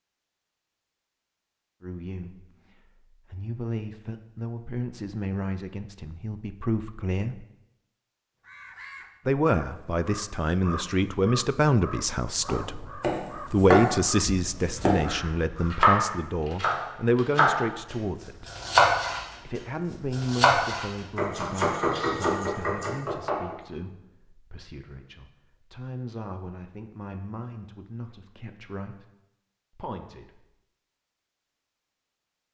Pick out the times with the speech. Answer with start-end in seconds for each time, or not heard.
1.8-7.5, 9.2-18.5, 19.4-29.1, 29.8-30.4.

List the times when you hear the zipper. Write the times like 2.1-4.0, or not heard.
not heard.